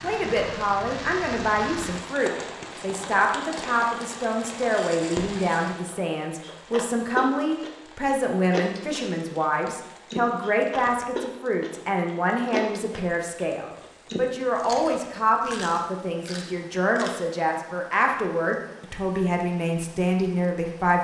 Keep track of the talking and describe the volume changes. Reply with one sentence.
The loudness of the talking stays about the same.